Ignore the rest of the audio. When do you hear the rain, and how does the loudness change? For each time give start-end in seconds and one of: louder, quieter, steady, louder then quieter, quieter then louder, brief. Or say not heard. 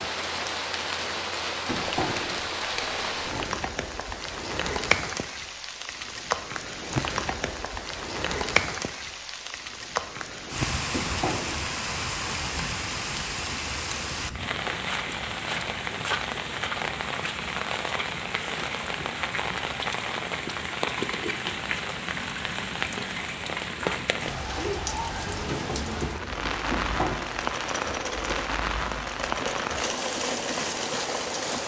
0.0-31.6 steady.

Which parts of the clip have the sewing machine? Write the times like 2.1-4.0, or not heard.
24.4-31.6.